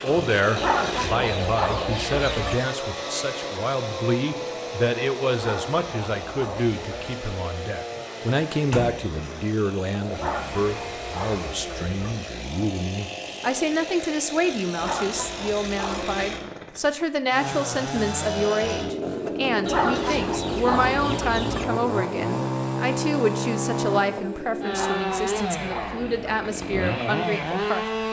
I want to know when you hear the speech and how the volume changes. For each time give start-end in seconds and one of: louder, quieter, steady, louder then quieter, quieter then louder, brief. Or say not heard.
0.0-27.9 steady.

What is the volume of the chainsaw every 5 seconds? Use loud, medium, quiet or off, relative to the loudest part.
loud, medium, medium, loud, loud, loud.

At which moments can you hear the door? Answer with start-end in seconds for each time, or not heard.
7.9-9.2.